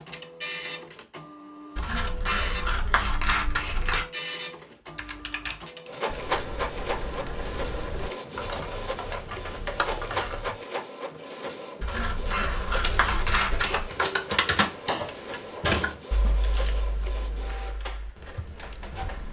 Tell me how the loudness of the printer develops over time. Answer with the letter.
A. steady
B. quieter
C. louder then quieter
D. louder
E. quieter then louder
B.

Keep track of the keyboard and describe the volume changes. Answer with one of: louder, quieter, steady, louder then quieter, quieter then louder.
louder then quieter.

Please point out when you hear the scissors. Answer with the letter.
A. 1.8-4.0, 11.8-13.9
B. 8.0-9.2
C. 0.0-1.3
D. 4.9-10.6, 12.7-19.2
A.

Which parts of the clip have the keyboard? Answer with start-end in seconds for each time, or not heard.
4.9-10.6, 12.7-19.2.